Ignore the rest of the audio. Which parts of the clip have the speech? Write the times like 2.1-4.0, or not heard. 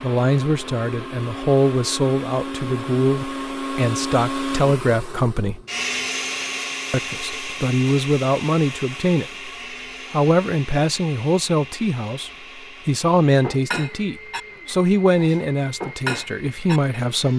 0.0-5.6, 6.9-9.5, 10.1-17.3.